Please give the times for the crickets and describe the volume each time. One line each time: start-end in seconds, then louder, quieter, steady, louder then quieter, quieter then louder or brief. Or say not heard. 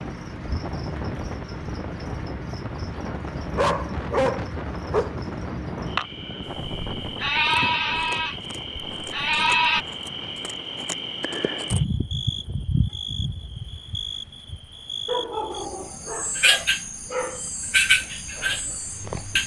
0.0-19.4 louder.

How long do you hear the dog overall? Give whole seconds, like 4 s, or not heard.
4 s.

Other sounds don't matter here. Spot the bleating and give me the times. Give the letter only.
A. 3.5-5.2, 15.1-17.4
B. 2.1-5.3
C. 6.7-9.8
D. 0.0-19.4
C.